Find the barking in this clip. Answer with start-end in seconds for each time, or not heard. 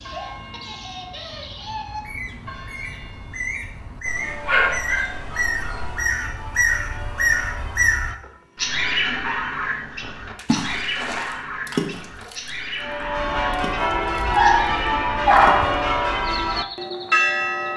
4.0-6.0, 14.2-15.8.